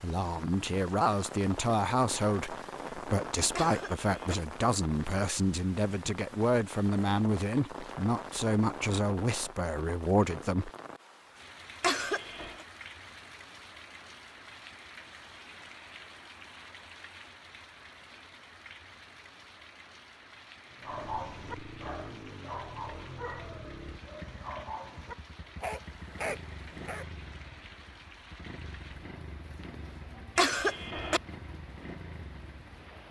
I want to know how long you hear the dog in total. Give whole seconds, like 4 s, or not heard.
6 s.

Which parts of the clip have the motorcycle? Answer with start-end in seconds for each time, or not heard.
20.8-33.0.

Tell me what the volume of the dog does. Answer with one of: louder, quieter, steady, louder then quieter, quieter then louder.
quieter then louder.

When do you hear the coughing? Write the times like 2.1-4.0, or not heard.
3.5-4.3, 11.8-12.7, 30.4-31.2.